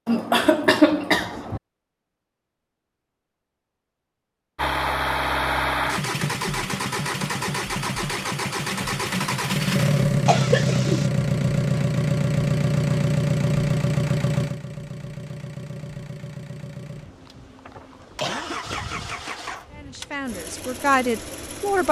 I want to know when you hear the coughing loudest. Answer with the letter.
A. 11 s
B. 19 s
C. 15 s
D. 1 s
D.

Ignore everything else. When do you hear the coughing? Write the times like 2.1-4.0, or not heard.
0.1-1.6, 10.2-11.1, 17.6-19.0.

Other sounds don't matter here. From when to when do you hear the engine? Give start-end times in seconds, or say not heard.
4.5-21.8.